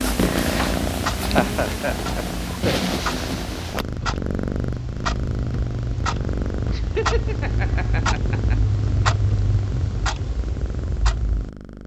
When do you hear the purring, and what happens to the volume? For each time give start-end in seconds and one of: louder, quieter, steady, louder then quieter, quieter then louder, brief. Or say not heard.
0.0-11.8 quieter.